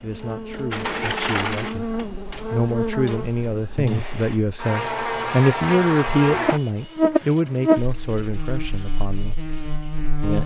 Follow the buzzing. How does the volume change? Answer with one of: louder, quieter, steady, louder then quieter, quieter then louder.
louder then quieter.